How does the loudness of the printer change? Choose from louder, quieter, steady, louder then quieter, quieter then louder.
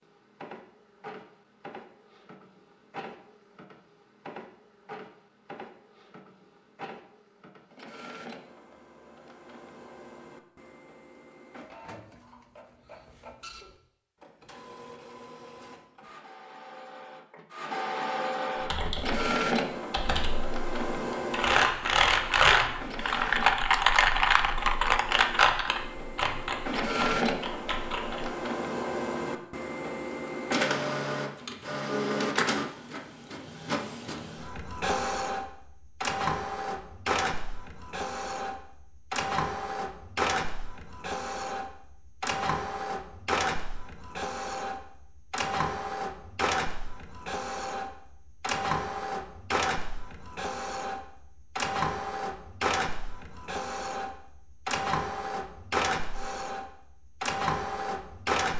louder.